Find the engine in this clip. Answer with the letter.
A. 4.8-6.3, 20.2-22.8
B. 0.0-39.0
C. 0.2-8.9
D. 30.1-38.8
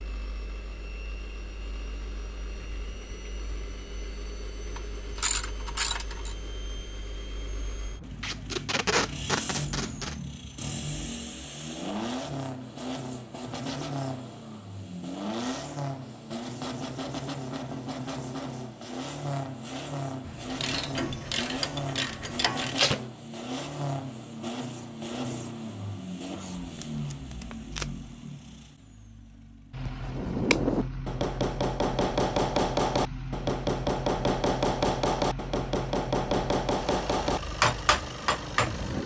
B.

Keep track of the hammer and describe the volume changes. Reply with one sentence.
The loudness of the hammer stays about the same.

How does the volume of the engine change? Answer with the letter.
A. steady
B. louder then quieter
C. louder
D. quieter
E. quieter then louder
C.